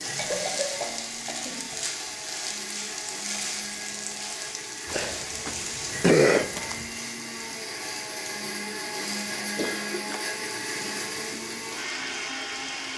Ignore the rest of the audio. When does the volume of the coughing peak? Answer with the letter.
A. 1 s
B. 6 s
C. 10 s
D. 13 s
B.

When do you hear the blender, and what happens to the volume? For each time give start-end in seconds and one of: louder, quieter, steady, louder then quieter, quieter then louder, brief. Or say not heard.
0.0-12.9 louder.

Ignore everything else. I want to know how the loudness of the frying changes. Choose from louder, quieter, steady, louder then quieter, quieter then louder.
quieter.